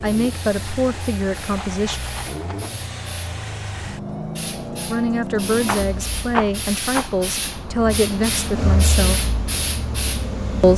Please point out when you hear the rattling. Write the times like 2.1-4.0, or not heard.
1.5-2.7, 5.7-7.2.